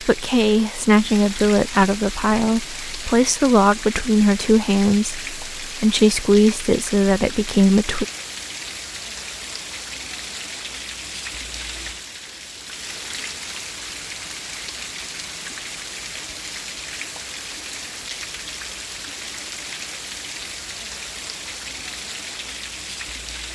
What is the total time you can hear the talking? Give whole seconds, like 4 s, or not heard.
8 s.